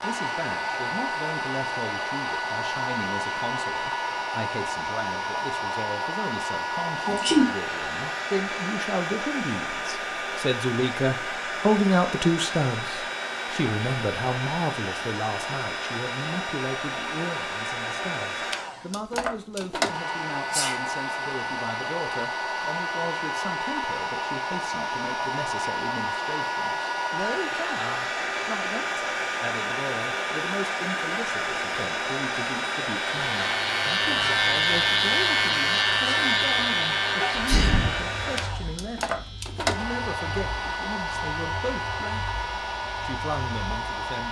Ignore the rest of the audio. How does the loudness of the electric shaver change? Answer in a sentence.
The loudness of the electric shaver goes down.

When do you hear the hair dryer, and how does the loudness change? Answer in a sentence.
The hair dryer can be heard from 0.0 to 44.2 s, at a steady volume.